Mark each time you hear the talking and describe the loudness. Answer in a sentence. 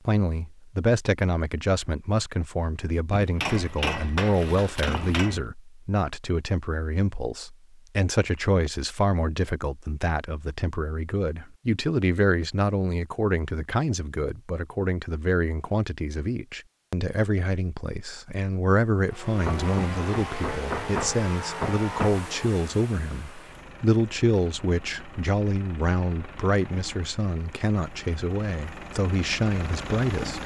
The talking can be heard from 0.1 to 30.4 s, at a steady volume.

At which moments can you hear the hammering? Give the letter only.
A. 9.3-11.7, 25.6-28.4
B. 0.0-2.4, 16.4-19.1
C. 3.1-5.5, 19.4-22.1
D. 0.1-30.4
C.